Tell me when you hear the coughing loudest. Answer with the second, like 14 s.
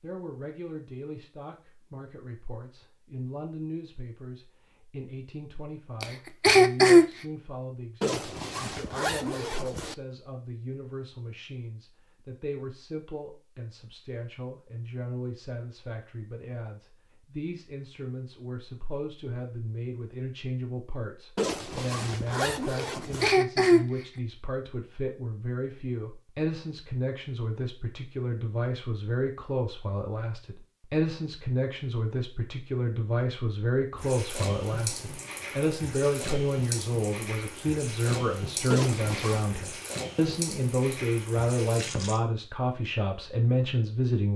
7 s.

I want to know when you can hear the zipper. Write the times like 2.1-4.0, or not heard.
8.0-9.9, 21.4-23.3, 38.7-39.5.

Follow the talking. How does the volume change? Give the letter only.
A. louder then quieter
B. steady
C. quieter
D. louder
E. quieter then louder
D.